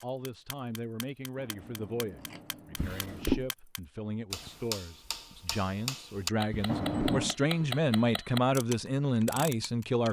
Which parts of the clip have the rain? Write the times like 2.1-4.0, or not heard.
not heard.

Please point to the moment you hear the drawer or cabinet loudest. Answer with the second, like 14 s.
3 s.